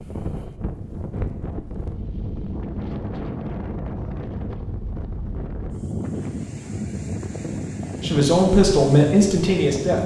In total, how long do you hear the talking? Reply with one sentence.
The talking can be heard for 2 seconds in total.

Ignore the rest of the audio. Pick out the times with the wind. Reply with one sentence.
The wind can be heard from 0.0 to 10.0 s.